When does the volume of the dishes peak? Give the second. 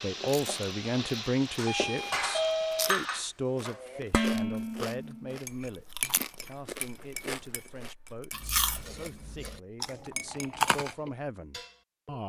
4 s.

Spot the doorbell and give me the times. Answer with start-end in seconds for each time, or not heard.
1.6-3.0.